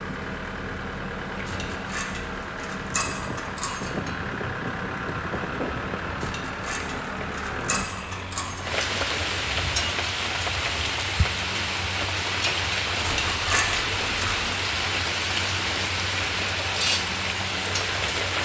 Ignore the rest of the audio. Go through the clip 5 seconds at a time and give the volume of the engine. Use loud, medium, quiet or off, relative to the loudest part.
loud, loud, medium, medium.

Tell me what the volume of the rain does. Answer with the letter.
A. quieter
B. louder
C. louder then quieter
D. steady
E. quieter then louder
B.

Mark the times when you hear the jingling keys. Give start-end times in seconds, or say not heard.
1.4-3.9, 6.2-8.7, 13.0-14.4.